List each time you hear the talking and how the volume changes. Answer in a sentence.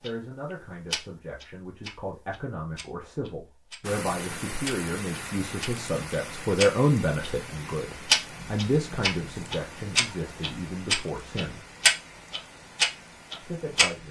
The talking can be heard from 0.0 to 11.7 s, getting louder then quieter; and briefly from 13.4 to 14.0 s.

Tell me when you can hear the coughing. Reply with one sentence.
You can't hear the coughing here.